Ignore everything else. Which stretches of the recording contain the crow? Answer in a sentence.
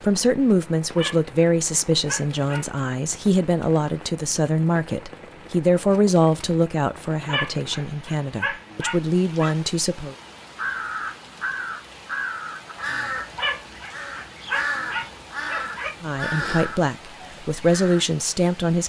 You can hear the crow from 10.6 to 18.1 s.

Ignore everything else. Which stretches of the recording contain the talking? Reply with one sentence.
The talking can be heard from 0.0 to 10.2 s and from 16.0 to 18.8 s.